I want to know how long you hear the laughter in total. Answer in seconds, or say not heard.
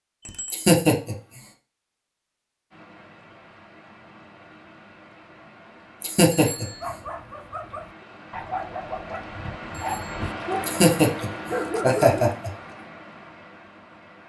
4 s.